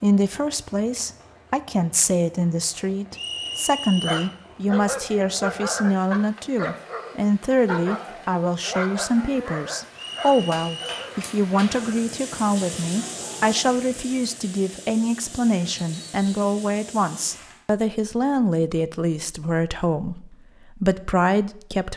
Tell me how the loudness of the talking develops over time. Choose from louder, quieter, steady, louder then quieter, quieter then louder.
steady.